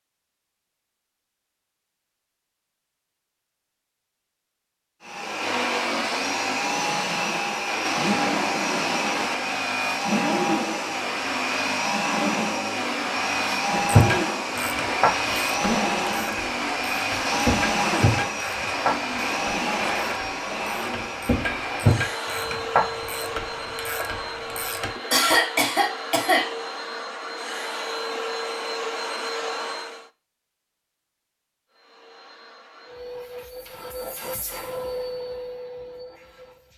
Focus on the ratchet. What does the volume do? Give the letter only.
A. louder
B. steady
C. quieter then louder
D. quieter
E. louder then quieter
B.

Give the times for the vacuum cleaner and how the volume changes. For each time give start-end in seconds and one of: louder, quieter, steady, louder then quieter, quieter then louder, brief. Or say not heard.
5.0-30.1 quieter
31.7-36.7 louder then quieter.